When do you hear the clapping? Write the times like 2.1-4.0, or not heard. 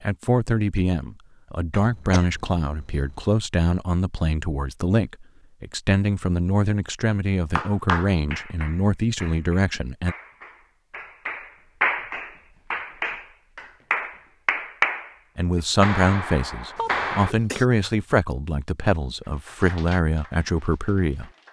7.5-17.4, 19.2-21.4.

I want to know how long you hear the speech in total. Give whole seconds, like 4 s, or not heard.
16 s.